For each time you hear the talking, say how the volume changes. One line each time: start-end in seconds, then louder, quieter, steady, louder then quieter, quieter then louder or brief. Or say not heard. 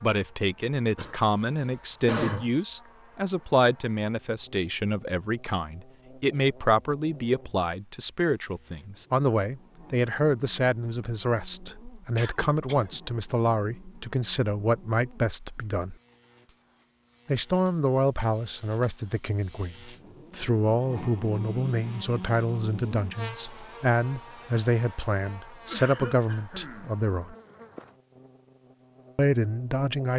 0.0-15.9 steady
17.2-27.4 steady
29.1-30.1 brief.